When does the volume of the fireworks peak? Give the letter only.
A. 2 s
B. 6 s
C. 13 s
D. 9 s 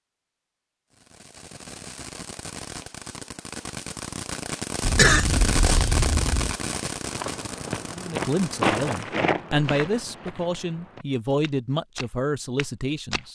B.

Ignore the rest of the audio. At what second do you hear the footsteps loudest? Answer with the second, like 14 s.
9 s.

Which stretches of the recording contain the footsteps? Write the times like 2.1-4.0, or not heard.
7.0-13.2.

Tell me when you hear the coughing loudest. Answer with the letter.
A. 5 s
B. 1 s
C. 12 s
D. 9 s
A.